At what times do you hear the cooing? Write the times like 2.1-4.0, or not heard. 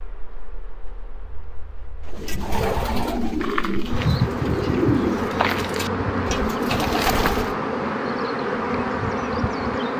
2.0-7.5.